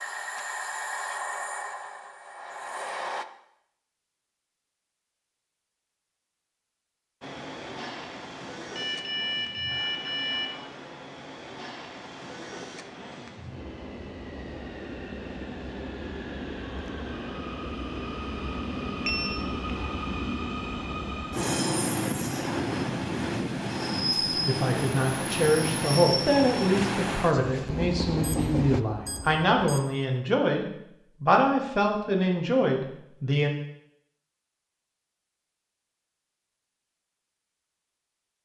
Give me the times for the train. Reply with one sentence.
You can hear the train from 0.0 to 3.2 s and from 7.2 to 28.9 s.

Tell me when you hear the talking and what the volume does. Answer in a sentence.
You can hear the talking from 24.3 to 33.5 s, at a steady volume.